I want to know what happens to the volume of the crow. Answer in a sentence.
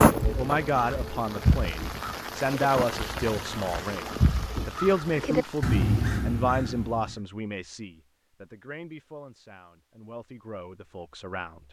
The volume of the crow goes down, then up.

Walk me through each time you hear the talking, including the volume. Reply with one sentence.
The talking can be heard from 0.3 to 11.6 s, getting quieter.